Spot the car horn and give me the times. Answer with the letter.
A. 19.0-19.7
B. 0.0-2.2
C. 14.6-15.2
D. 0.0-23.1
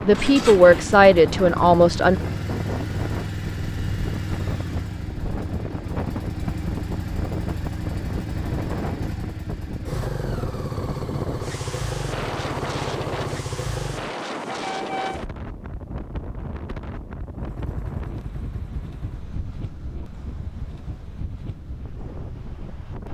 C.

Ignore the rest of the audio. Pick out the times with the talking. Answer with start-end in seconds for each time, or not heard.
0.0-2.2.